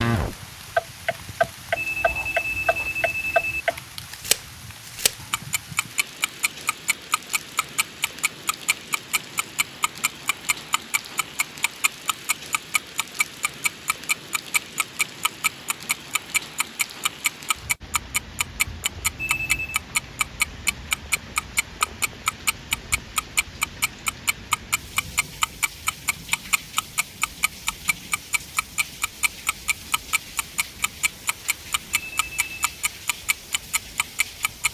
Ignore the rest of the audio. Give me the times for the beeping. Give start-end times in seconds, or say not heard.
1.8-3.6, 19.1-19.8, 31.9-32.8.